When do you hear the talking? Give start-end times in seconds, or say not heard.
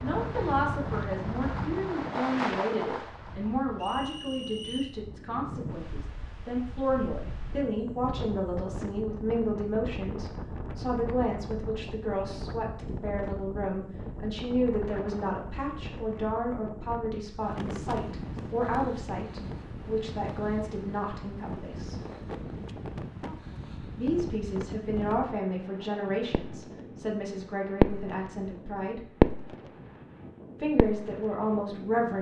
0.0-22.0, 23.9-29.0, 30.6-32.1.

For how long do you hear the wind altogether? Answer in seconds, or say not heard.
32 s.